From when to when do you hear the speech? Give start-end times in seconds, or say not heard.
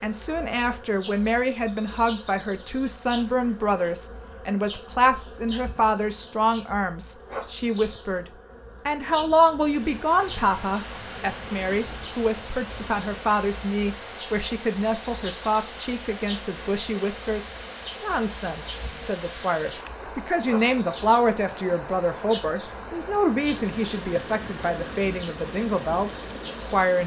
0.0-8.2, 8.8-27.0.